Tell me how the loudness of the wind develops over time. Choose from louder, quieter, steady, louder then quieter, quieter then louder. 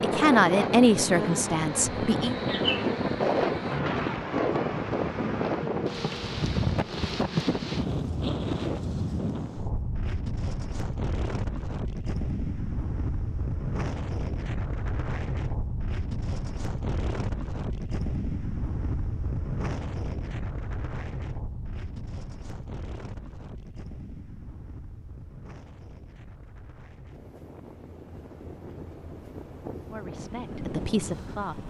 quieter.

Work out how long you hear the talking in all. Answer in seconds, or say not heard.
4 s.